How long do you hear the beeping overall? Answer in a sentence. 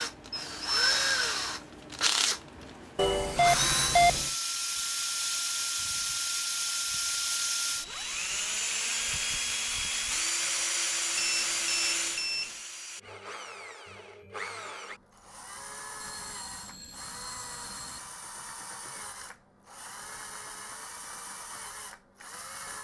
The beeping can be heard for 5 seconds in total.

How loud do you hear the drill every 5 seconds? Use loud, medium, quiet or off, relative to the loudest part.
loud, loud, loud, quiet, quiet.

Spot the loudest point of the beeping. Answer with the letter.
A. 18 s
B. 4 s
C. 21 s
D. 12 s
B.